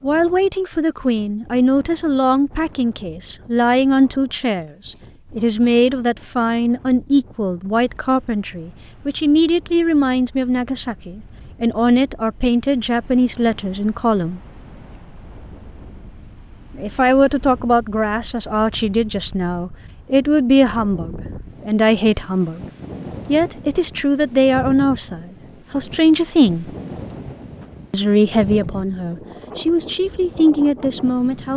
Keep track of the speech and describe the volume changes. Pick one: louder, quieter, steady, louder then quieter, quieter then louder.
steady.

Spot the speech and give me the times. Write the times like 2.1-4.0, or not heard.
0.0-14.4, 16.8-22.6, 23.2-26.7, 27.9-31.5.